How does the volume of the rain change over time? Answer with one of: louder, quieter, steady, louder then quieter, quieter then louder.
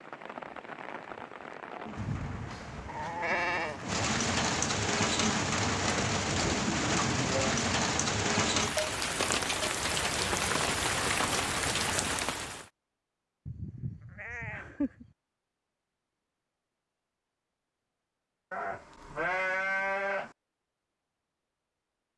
louder.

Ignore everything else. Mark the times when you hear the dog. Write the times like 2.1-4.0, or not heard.
not heard.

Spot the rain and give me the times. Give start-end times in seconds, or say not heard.
0.0-12.7.